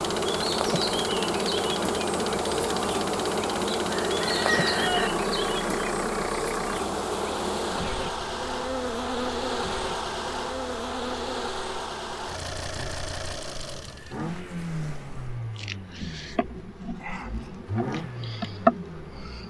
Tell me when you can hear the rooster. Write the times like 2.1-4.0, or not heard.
3.8-5.1.